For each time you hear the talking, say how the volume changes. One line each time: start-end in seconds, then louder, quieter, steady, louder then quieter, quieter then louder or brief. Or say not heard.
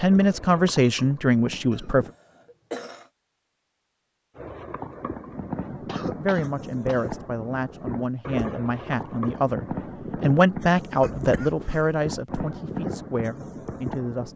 0.0-2.0 brief
5.7-14.3 louder then quieter.